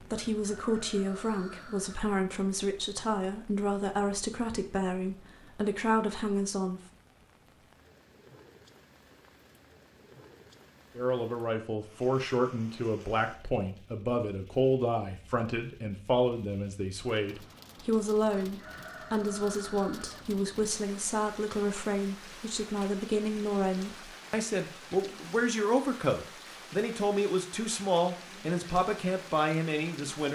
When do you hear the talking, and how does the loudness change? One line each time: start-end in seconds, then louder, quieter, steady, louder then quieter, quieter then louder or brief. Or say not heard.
0.0-6.8 steady
10.9-30.2 steady.